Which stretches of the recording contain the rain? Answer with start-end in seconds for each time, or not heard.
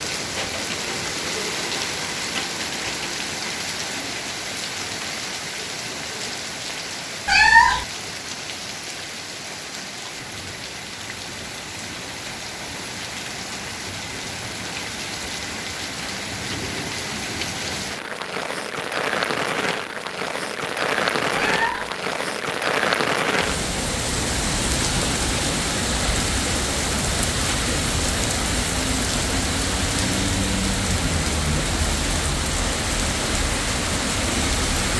0.0-34.9.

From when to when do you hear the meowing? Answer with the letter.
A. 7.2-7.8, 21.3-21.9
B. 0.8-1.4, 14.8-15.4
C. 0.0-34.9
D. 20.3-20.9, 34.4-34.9
A.